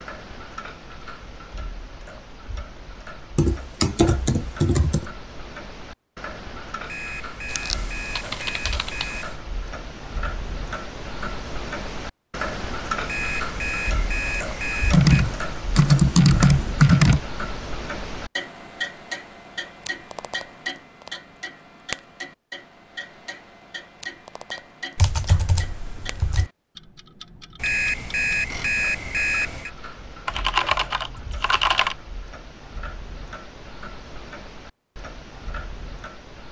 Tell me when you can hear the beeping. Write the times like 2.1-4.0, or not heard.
6.8-9.3, 13.1-15.2, 27.6-29.7.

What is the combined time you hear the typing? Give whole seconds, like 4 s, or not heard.
9 s.